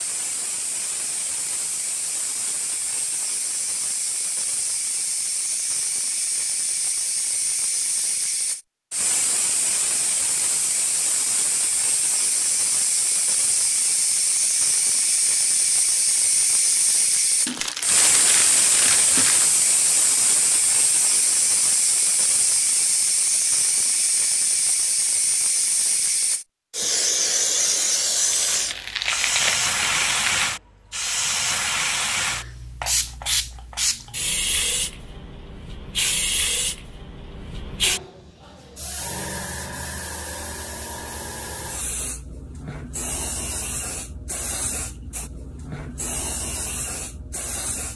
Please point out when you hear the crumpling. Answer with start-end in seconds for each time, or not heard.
17.4-19.5, 28.3-30.5.